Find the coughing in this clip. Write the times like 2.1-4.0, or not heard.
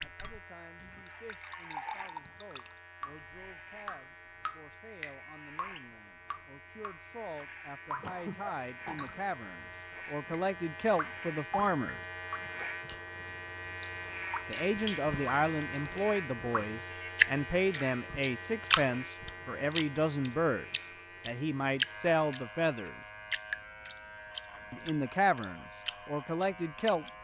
8.0-9.2.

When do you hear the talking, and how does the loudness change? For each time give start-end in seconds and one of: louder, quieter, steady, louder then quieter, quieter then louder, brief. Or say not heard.
0.0-12.0 louder
14.4-23.0 steady
24.7-27.1 brief.